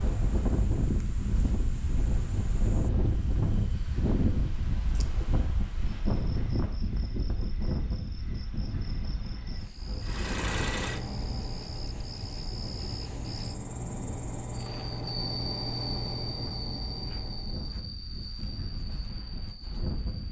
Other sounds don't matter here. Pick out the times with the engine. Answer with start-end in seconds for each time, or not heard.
10.0-17.8.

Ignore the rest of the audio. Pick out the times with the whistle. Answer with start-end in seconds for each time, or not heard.
not heard.